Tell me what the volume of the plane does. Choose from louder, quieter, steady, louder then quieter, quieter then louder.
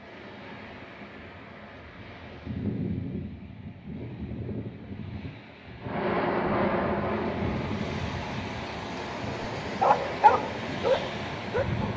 quieter.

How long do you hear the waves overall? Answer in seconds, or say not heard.
12 s.